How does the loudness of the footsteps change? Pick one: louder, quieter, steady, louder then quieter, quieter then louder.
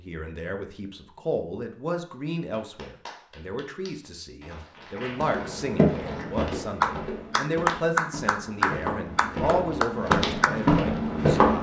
quieter then louder.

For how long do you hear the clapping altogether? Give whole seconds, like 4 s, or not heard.
8 s.